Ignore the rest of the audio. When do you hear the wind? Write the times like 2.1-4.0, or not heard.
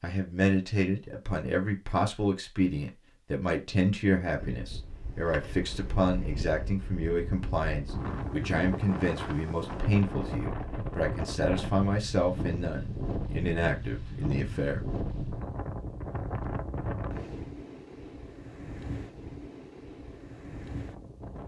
4.3-21.4.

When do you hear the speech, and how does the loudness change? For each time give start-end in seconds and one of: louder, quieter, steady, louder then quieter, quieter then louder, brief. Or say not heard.
0.0-14.8 steady.